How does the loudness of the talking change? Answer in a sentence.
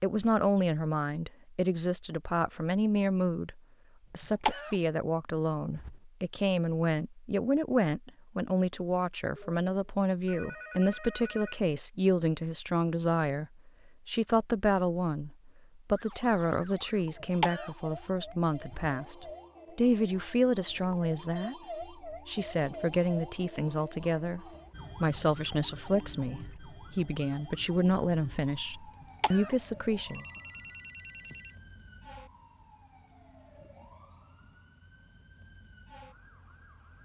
The volume of the talking stays about the same.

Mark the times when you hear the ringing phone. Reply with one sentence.
You can hear the ringing phone from 9.3 to 11.6 s and from 30.1 to 31.6 s.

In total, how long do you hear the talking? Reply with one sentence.
The talking can be heard for 30 seconds in total.